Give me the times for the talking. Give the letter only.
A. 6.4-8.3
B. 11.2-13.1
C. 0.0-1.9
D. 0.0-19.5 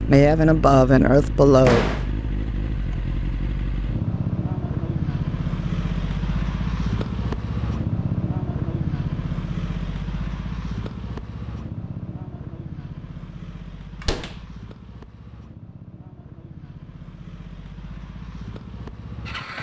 C.